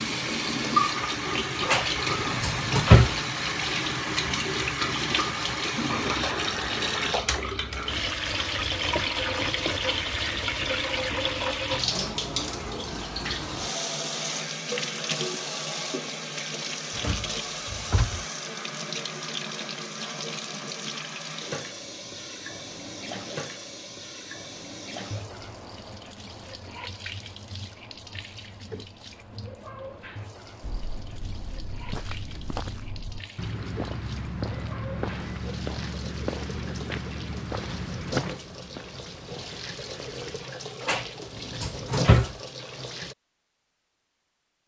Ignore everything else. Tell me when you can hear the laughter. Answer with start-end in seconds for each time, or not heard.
not heard.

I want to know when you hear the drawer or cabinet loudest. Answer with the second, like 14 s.
3 s.